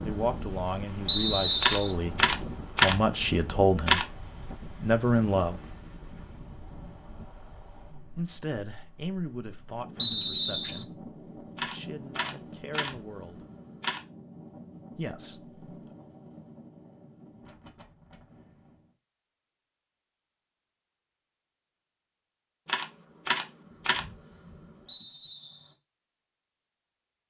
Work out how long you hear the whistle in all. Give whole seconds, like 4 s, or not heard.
3 s.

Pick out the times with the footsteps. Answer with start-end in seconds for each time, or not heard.
not heard.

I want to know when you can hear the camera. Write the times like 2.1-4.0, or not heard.
1.6-4.0, 11.6-14.0, 22.6-24.6.